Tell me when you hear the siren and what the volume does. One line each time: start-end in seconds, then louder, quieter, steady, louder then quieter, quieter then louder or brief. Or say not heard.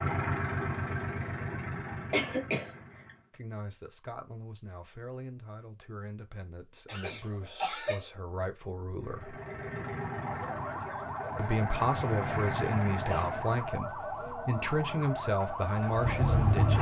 10.1-16.7 steady.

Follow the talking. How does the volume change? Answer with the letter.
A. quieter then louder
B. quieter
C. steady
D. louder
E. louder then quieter
D.